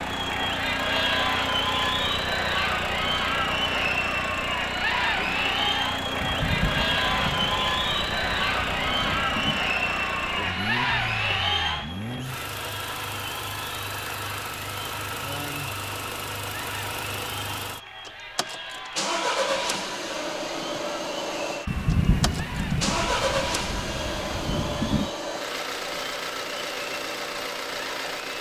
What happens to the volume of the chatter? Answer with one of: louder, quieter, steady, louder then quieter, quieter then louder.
quieter.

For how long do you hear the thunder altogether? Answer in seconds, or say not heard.
7 s.